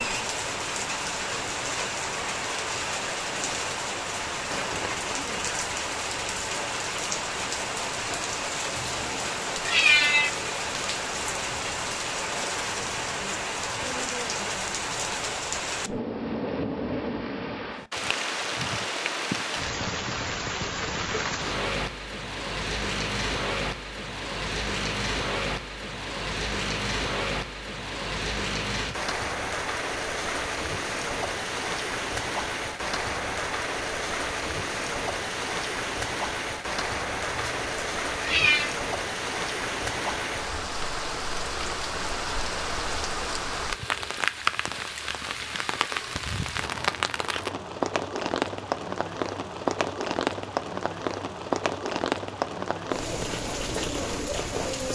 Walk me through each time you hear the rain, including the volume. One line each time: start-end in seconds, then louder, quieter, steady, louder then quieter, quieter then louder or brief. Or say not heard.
0.0-54.8 steady.